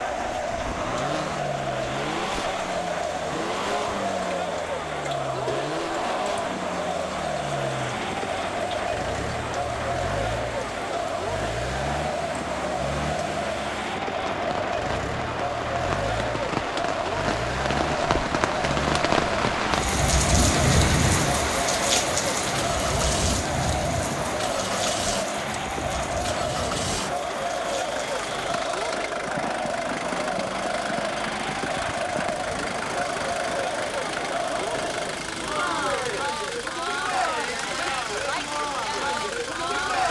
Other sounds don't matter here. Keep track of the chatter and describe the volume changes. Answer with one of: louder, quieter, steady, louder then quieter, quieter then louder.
steady.